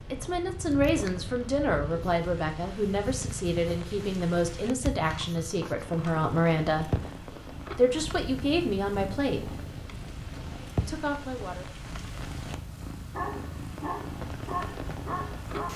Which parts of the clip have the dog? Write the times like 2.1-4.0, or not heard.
13.0-15.7.